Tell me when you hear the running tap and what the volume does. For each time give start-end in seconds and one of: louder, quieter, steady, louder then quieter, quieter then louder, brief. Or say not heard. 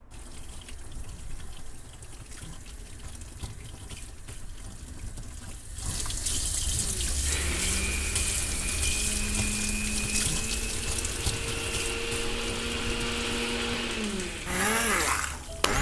0.0-15.7 louder then quieter.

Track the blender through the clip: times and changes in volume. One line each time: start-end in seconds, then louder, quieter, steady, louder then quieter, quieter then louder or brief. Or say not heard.
6.7-15.7 louder.